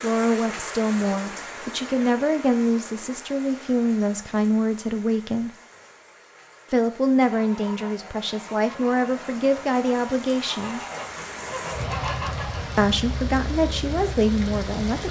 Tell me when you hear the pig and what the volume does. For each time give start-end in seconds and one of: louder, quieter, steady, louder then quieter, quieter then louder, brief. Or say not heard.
not heard.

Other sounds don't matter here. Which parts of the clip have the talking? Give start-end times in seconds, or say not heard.
0.0-5.5, 6.7-10.8, 12.8-15.0.